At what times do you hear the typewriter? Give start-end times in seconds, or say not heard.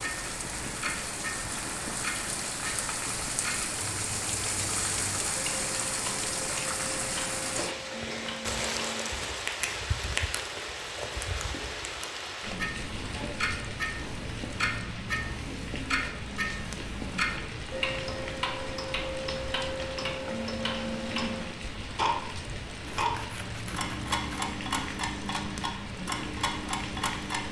not heard.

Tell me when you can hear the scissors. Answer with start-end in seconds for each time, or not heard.
22.9-24.4.